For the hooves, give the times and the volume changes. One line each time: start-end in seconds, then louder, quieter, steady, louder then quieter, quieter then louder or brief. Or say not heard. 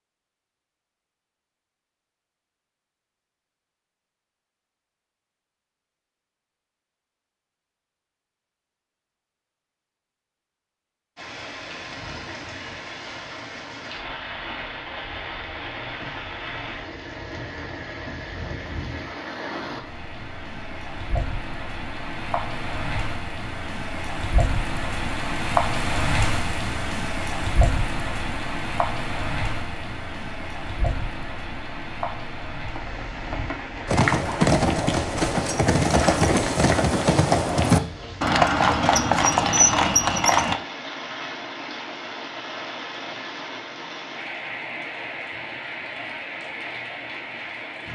33.9-40.6 steady.